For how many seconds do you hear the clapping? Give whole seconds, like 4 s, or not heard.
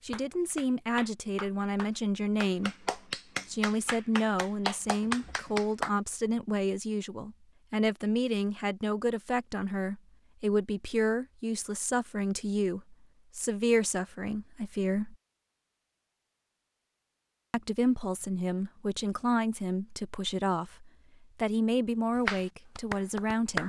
7 s.